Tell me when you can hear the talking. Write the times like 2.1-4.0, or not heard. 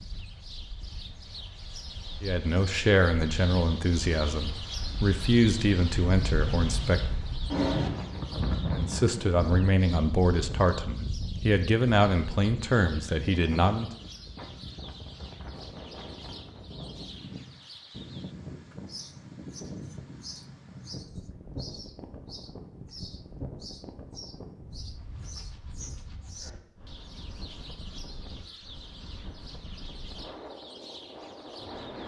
2.2-7.1, 8.7-13.9.